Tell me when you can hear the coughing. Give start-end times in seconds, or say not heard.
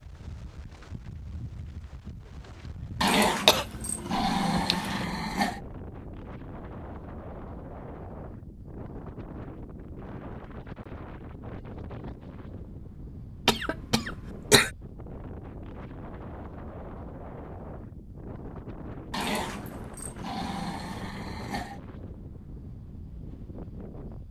3.5-5.0, 13.4-14.7.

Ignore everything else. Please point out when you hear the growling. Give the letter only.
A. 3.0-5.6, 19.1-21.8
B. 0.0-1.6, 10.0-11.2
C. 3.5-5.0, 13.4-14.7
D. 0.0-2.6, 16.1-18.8
A.